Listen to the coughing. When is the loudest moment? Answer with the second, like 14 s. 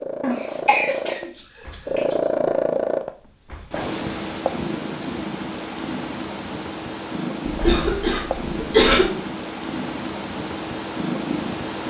9 s.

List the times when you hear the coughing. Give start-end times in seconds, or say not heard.
0.2-2.1, 7.5-9.1.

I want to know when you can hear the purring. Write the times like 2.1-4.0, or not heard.
0.0-11.8.